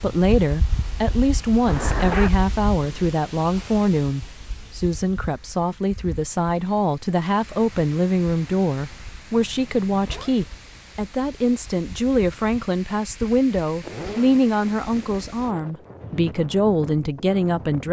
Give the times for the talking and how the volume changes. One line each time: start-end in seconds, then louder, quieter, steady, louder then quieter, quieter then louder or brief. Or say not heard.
0.0-17.8 steady.